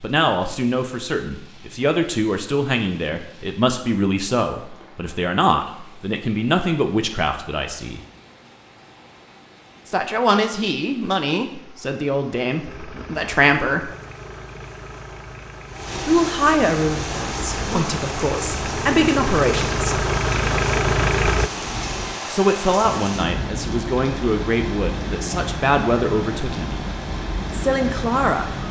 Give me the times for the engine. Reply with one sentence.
You can hear the engine from 12.7 to 21.5 s.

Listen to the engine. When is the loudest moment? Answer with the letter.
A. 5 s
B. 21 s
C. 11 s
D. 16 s
B.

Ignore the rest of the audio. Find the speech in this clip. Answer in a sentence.
The speech can be heard from 0.0 to 8.0 s, from 9.8 to 13.9 s, from 16.1 to 20.1 s, from 22.3 to 26.8 s and from 27.5 to 28.5 s.